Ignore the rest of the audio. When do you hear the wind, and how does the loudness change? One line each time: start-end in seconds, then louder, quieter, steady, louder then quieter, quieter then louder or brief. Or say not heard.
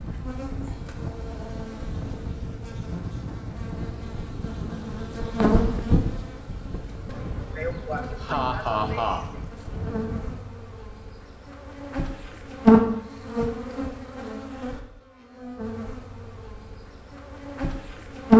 0.0-10.6 steady.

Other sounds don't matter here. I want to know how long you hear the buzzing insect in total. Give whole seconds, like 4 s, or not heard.
18 s.